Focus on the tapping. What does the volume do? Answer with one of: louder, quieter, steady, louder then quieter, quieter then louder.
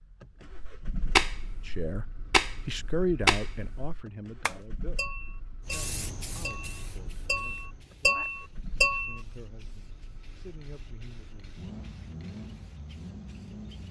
quieter then louder.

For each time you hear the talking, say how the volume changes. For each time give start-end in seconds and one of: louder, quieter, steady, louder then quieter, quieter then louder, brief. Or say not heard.
1.6-11.7 quieter.